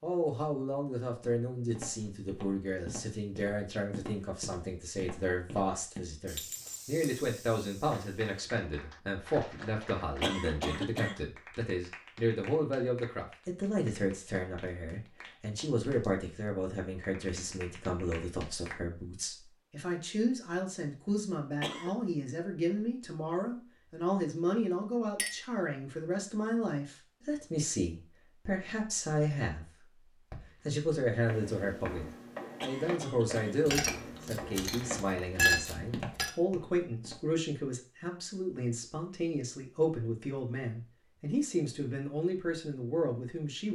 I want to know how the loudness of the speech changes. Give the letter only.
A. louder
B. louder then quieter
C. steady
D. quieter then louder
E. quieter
C.